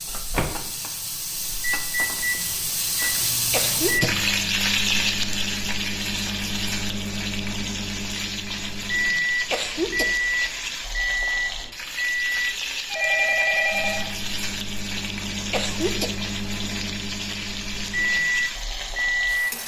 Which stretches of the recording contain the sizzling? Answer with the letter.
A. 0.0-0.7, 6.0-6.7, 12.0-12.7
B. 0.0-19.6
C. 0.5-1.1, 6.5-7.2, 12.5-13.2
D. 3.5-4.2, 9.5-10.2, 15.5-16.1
B.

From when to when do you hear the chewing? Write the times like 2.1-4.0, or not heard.
not heard.